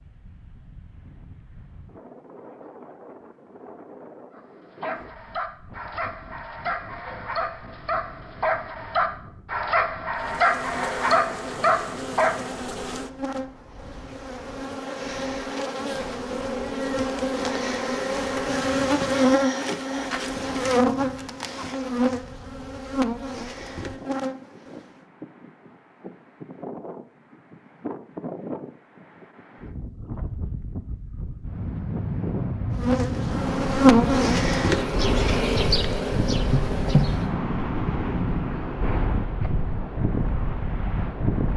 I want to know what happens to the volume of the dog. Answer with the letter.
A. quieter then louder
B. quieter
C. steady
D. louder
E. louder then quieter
D.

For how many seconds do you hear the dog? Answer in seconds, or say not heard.
8 s.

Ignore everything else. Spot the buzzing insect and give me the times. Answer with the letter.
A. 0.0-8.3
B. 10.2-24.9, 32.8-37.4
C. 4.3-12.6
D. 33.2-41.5
B.